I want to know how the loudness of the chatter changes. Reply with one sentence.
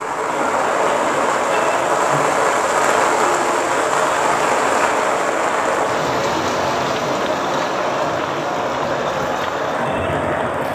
The loudness of the chatter stays about the same.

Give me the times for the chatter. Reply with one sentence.
The chatter can be heard from 0.1 to 10.6 s.